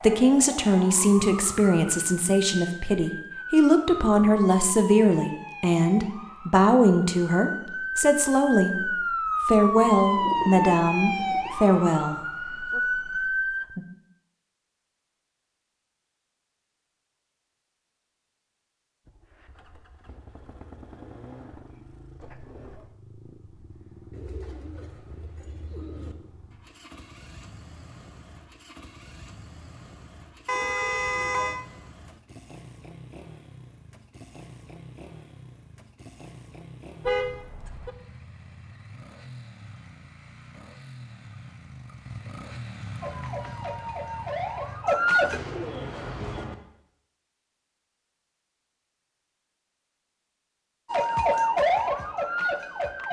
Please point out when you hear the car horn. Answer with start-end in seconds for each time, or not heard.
0.1-0.9, 30.4-31.6, 37.0-37.9.